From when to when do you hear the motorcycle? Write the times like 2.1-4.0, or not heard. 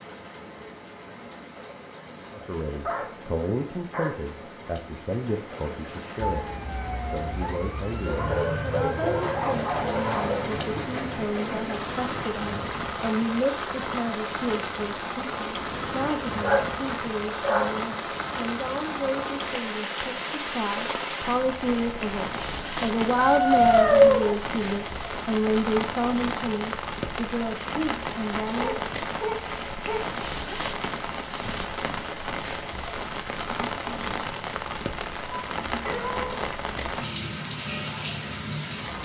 not heard.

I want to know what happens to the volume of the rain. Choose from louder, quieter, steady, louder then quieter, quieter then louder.
louder.